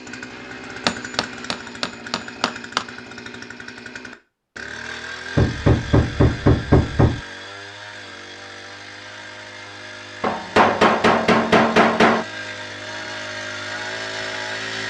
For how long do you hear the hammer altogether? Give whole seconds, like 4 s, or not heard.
6 s.